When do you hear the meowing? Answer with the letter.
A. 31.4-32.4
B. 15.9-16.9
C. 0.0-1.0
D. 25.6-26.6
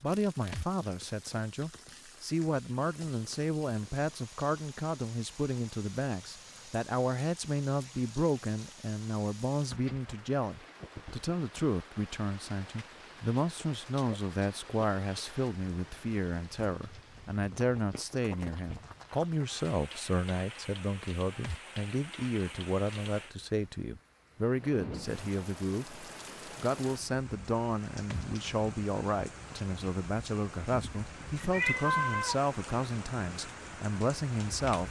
A.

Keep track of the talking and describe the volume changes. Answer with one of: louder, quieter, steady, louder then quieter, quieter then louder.
steady.